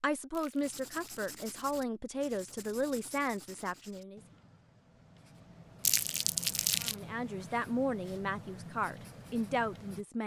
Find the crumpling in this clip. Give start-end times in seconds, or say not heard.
0.3-1.2, 5.8-7.0.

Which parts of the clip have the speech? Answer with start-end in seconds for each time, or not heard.
0.0-4.2, 6.8-10.2.